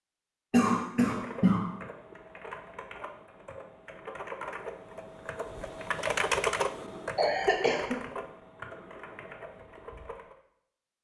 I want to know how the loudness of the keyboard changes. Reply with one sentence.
The loudness of the keyboard goes up, then down.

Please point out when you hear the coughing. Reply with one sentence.
You can hear the coughing from 0.5 to 1.7 s and from 7.2 to 8.0 s.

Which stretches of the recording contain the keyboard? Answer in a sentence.
The keyboard can be heard from 1.1 to 10.3 s.